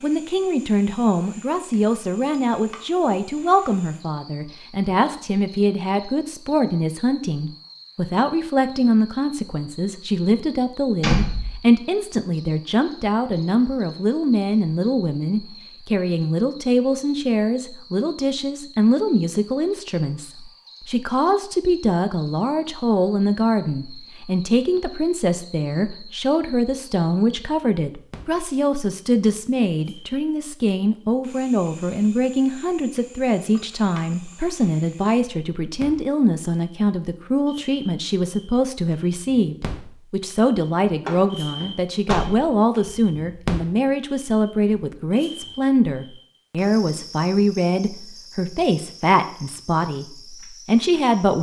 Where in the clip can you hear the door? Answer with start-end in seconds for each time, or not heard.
11.0-11.6, 41.0-42.5.